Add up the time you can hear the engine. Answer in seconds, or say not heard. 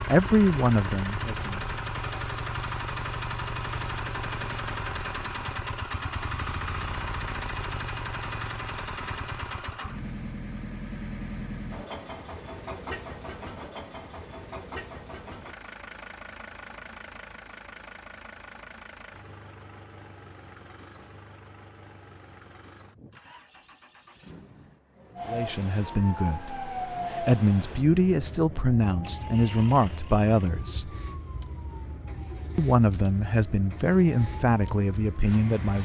36 s.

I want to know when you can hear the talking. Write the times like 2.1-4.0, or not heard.
0.0-1.6, 25.2-30.9, 32.5-35.8.